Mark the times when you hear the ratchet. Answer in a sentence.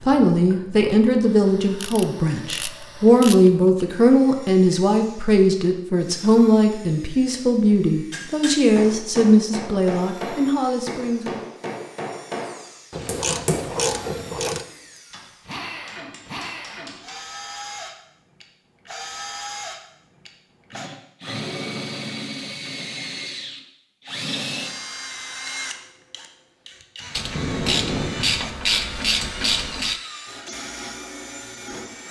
You can hear the ratchet from 1.8 to 3.5 s, from 12.9 to 14.7 s and from 27.1 to 30.0 s.